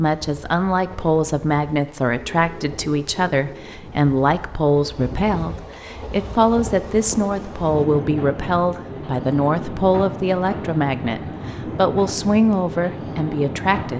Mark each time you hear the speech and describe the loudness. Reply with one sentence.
You can hear the speech from 0.0 to 13.9 s, at a steady volume.